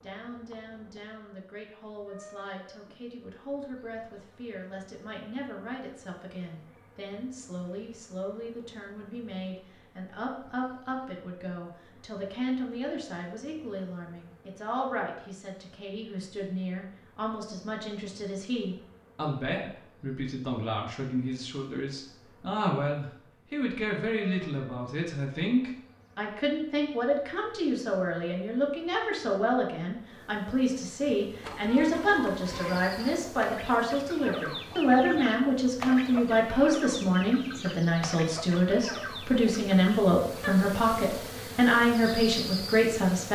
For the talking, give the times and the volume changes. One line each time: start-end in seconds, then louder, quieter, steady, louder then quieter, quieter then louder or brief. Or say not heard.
0.0-43.2 louder.